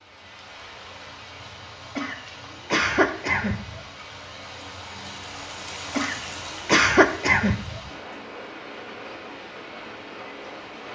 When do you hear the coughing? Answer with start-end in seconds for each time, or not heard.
1.9-3.8, 5.9-7.9.